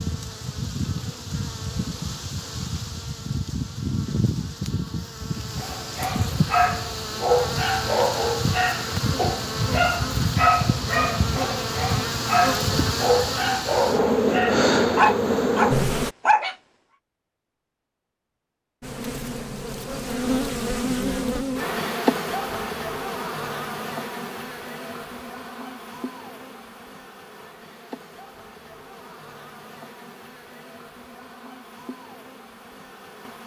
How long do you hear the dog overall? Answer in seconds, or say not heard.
11 s.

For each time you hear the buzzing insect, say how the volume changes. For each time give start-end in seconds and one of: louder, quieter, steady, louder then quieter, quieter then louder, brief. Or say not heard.
0.0-16.1 louder
18.8-33.4 quieter.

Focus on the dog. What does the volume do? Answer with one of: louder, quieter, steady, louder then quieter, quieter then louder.
steady.